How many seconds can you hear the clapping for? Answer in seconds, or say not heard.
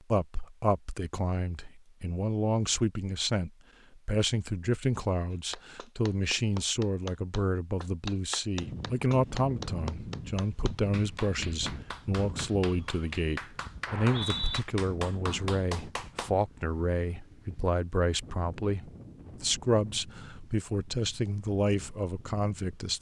11 s.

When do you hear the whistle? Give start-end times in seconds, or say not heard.
13.8-14.6.